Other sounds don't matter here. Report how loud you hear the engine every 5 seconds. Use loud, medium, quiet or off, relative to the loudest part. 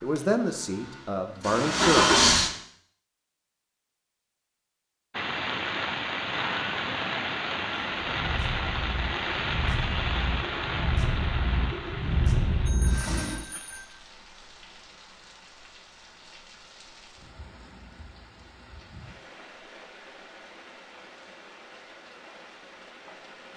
loud, quiet, medium, off, off.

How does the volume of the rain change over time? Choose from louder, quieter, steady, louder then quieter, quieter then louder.
quieter.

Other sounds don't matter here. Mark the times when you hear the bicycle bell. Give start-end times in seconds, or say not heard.
12.7-13.8.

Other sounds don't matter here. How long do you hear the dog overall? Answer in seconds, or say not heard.
not heard.